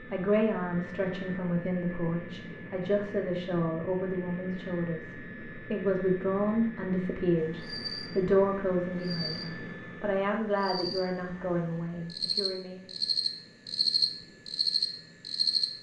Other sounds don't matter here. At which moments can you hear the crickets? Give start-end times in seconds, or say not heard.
7.3-15.7.